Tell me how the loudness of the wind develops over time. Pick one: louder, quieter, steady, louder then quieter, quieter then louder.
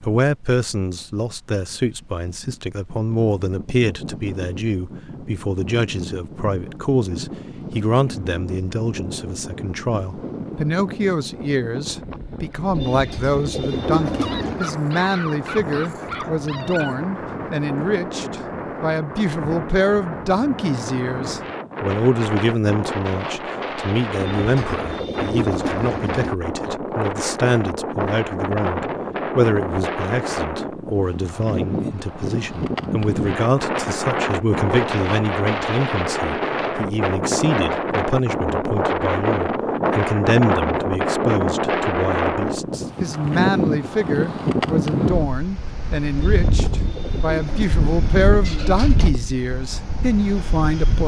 louder.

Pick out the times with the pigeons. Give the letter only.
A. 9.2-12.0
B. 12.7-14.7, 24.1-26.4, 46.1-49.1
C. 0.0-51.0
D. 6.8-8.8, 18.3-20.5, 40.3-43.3
B.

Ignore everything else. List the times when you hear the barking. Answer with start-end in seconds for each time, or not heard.
14.2-16.9.